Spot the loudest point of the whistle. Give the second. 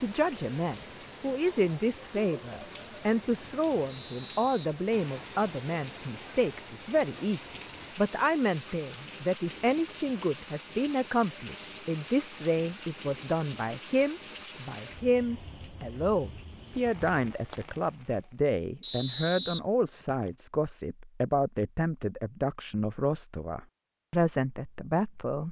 19 s.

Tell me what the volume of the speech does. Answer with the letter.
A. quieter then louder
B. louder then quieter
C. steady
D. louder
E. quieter
C.